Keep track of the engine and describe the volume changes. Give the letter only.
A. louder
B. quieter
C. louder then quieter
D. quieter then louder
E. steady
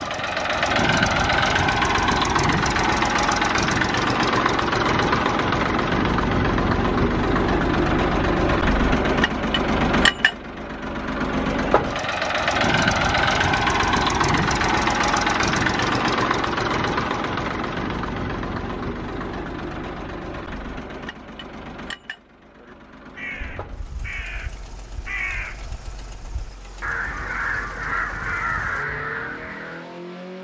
B.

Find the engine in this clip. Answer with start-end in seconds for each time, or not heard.
0.0-30.3.